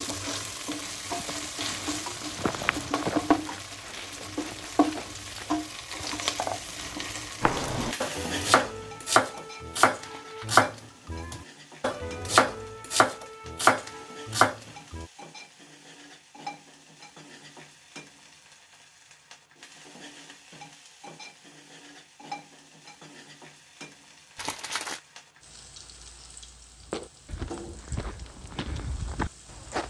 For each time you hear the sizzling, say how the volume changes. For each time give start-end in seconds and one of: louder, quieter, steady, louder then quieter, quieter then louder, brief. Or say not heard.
0.0-29.8 quieter.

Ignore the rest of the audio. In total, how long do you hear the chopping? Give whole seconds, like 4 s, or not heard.
8 s.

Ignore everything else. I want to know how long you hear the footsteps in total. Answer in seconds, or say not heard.
8 s.